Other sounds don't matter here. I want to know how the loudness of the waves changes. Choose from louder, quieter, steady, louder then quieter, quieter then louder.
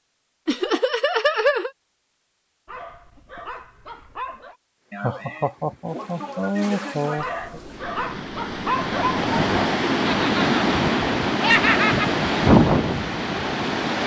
louder.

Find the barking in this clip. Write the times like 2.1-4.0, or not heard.
2.6-4.5, 7.2-9.6.